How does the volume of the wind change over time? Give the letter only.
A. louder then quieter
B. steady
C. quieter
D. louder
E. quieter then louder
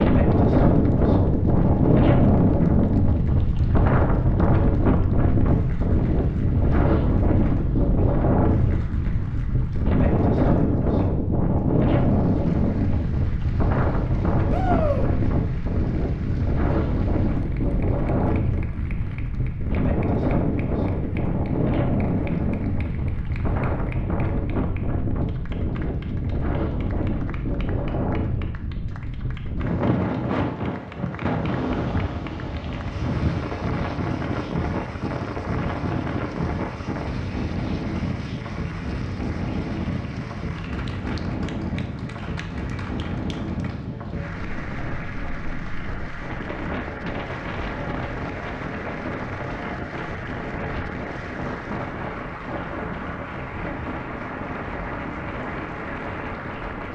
C.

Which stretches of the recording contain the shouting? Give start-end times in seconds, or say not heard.
14.5-15.1.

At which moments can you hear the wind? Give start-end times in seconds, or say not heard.
0.0-56.9.